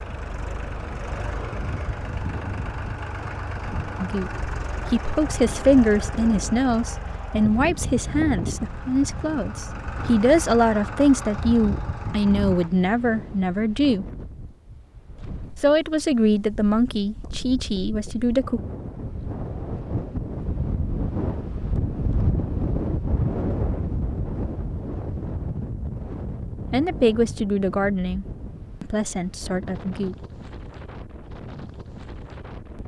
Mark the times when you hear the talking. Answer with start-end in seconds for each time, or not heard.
4.0-14.1, 15.6-18.6, 26.7-30.1.